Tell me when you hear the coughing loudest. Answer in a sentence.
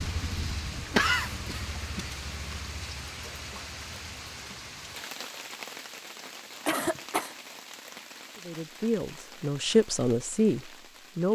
The volume of the coughing peaks at 1 second.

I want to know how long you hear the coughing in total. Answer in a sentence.
The coughing can be heard for 2 seconds in total.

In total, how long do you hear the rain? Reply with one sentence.
You can hear the rain for 11 seconds altogether.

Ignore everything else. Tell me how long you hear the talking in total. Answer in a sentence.
The talking can be heard for 3 seconds in total.